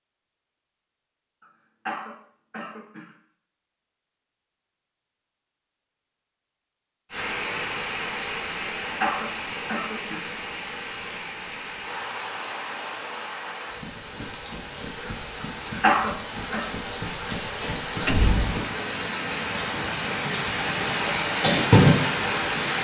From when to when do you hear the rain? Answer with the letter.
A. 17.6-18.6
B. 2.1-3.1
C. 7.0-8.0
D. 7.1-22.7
D.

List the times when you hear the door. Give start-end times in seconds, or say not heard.
17.6-18.6.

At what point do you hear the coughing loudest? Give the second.
16 s.